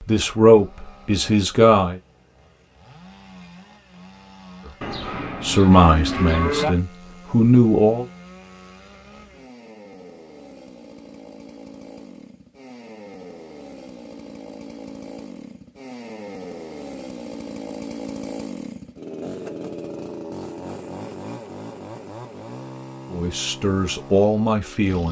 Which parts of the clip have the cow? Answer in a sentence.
You can hear the cow from 4.8 to 6.7 s.